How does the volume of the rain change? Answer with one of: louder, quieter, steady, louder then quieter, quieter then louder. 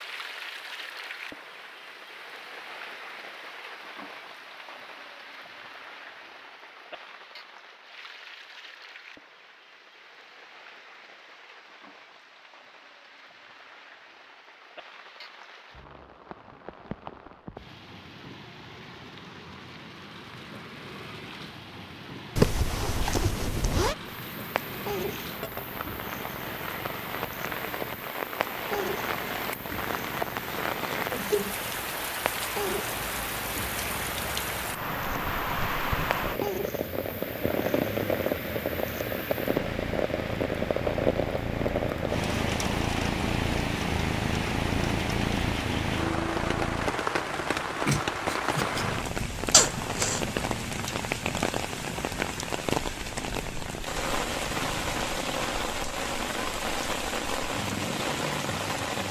louder.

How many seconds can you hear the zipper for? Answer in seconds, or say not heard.
2 s.